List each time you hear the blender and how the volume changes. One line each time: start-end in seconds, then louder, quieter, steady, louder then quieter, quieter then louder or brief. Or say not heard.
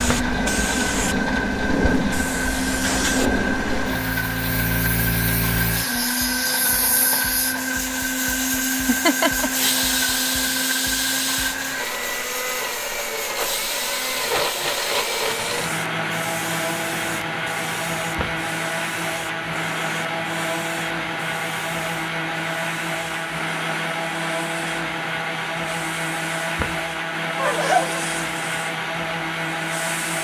0.0-30.1 steady.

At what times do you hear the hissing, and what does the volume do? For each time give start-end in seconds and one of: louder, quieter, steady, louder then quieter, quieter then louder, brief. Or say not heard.
0.0-30.1 quieter.